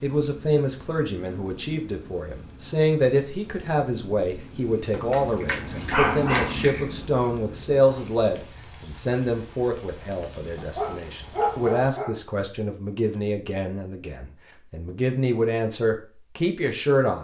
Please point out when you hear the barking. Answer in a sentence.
The barking can be heard from 4.9 to 6.8 s and from 10.6 to 12.2 s.